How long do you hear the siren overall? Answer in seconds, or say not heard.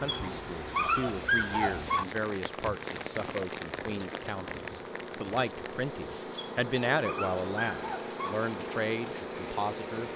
not heard.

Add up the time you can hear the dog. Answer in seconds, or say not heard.
4 s.